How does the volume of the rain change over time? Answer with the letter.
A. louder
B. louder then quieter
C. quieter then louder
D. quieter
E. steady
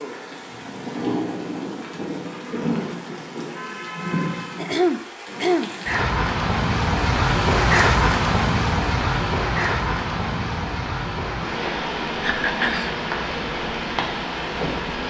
B.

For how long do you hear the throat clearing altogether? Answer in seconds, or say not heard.
2 s.